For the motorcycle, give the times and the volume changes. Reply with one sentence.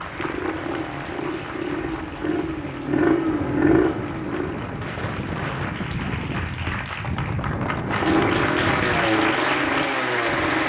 You can hear the motorcycle from 0.0 to 4.6 s, getting louder; and briefly from 7.8 to 10.6 s.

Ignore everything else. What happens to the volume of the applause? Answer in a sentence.
The volume of the applause goes down, then up.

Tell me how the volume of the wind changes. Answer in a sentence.
The loudness of the wind goes up.